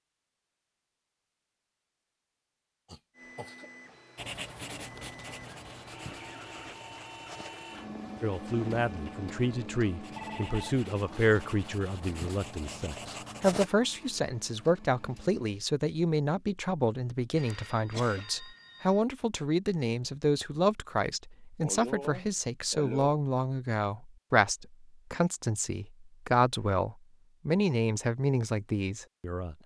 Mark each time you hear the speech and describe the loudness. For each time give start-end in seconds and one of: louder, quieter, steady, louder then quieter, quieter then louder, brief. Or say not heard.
8.2-29.6 steady.